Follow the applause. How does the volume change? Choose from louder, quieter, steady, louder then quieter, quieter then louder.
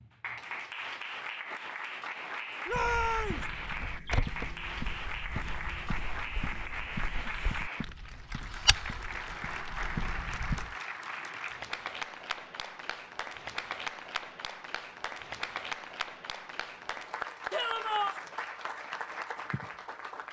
steady.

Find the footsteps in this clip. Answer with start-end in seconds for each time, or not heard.
2.7-10.8.